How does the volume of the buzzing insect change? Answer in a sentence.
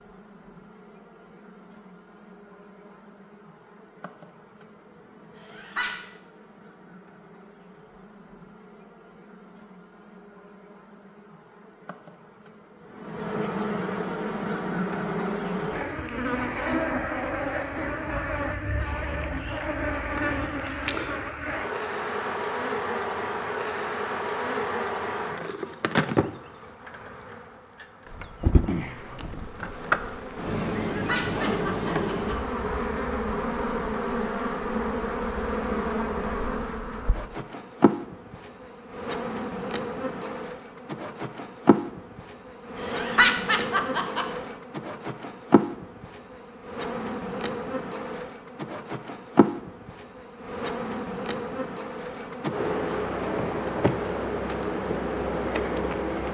The volume of the buzzing insect goes up.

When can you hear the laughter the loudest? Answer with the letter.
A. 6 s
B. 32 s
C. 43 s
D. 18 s
C.